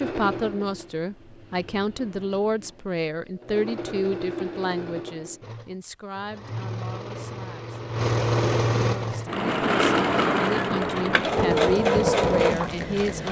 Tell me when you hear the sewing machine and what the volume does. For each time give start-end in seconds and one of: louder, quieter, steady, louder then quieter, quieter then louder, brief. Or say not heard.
0.0-13.2 louder.